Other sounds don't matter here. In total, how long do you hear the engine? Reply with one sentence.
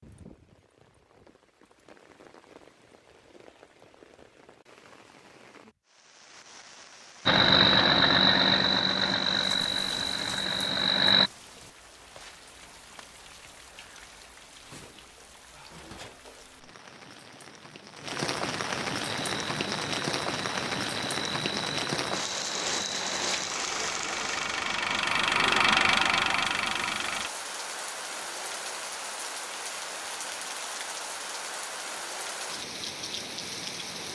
The engine can be heard for 12 seconds in total.